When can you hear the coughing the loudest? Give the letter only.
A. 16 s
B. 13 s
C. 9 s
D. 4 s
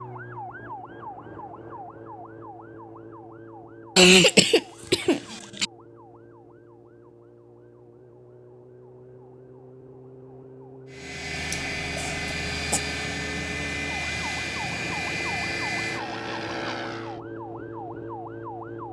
D.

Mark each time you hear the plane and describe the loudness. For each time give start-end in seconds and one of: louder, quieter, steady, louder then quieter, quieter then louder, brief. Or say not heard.
10.9-17.2 steady.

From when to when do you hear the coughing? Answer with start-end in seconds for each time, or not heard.
4.0-5.7, 11.5-12.8.